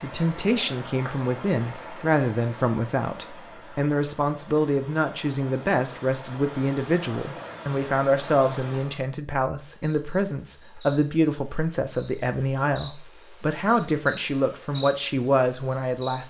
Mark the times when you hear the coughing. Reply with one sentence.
The coughing can't be heard in this clip.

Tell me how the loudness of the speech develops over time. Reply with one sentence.
The loudness of the speech stays about the same.